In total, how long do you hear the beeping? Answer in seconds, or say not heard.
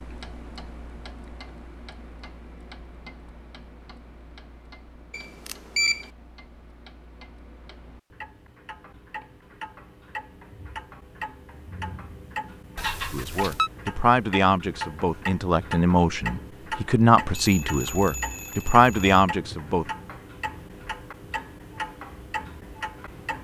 4 s.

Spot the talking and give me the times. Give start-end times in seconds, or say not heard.
13.1-19.9.